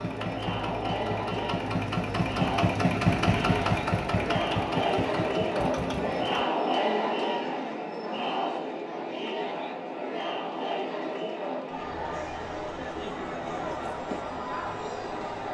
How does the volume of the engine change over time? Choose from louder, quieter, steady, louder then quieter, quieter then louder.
louder then quieter.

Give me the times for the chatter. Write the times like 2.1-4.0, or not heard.
0.0-15.4.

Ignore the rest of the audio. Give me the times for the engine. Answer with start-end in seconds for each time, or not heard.
0.0-6.4.